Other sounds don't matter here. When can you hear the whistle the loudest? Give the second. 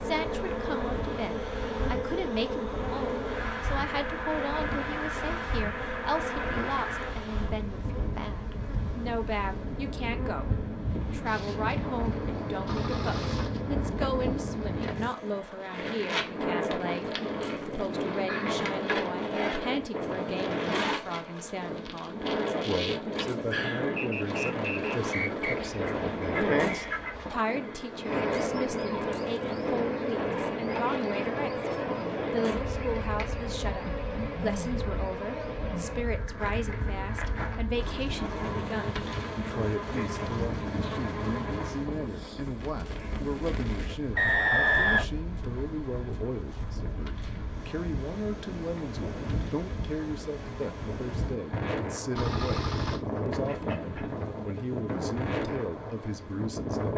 45 s.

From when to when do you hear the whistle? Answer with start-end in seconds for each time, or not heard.
23.9-25.6, 44.1-45.0.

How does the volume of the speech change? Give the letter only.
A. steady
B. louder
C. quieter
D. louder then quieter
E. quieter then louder
A.